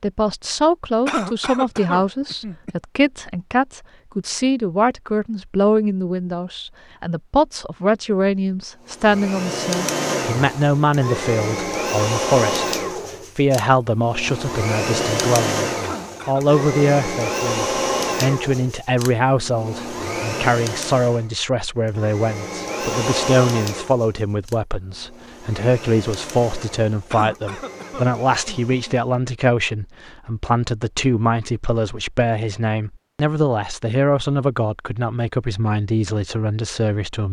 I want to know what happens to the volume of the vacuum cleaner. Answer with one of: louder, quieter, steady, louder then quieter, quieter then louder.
quieter.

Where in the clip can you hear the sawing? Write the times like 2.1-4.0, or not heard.
not heard.